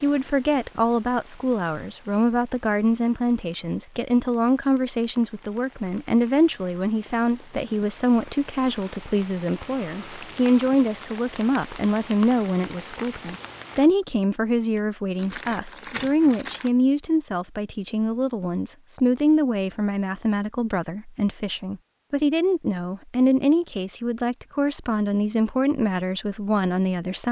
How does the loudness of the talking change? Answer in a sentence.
The loudness of the talking stays about the same.